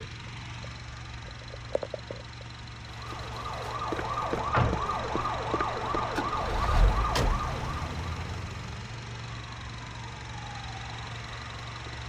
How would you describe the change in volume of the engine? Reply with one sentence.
The loudness of the engine stays about the same.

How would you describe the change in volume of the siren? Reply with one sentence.
The loudness of the siren goes down.